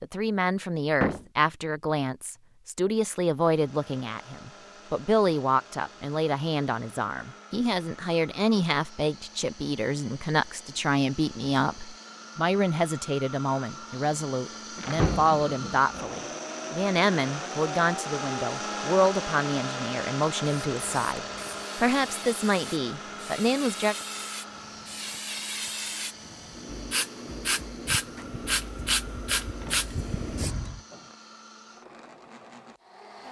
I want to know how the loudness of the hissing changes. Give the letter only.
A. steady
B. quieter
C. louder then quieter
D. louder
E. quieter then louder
D.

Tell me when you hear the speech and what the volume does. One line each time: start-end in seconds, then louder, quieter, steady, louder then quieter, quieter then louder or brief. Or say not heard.
0.0-23.9 steady.